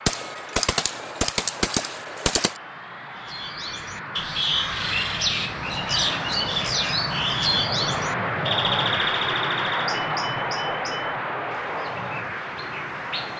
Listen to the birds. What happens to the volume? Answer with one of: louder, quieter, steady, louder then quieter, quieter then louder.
quieter.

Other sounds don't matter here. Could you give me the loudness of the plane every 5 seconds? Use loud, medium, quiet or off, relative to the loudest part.
medium, loud, loud.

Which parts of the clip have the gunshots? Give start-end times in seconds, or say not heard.
0.1-2.6.